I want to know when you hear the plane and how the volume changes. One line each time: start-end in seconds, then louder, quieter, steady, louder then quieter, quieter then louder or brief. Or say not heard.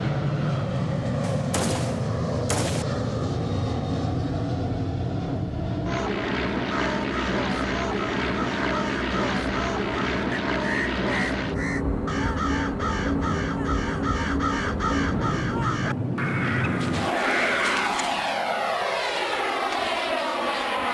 0.0-20.8 steady.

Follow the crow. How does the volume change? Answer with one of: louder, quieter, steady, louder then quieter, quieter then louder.
louder.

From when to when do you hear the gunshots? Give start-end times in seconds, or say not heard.
1.2-2.9.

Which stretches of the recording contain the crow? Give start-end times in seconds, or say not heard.
6.7-18.1.